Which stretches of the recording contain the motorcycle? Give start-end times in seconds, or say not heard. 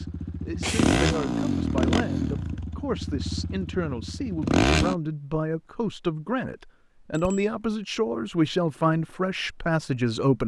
0.0-5.0.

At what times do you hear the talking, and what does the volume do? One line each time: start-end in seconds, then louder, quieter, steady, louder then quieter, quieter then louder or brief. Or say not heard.
0.0-10.4 louder.